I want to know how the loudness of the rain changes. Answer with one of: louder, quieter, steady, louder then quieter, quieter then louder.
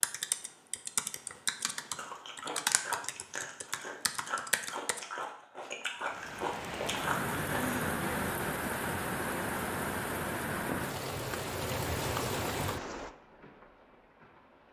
quieter.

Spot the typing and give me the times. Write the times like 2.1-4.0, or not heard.
0.0-5.0.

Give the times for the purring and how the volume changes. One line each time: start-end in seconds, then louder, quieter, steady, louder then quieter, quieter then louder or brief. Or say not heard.
not heard.